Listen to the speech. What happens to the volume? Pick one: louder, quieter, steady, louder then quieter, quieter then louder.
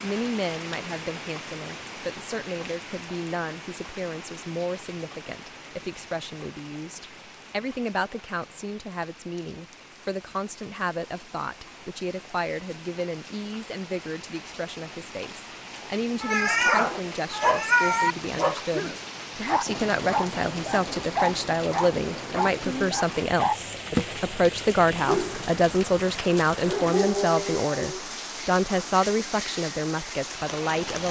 louder.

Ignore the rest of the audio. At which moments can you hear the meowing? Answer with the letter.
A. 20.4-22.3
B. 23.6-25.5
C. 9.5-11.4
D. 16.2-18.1
D.